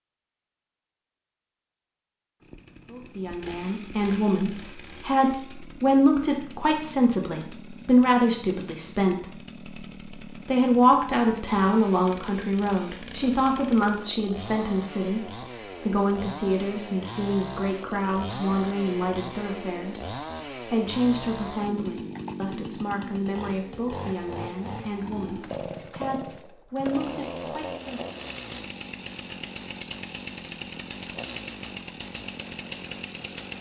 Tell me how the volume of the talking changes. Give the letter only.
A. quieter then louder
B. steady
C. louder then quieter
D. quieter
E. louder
D.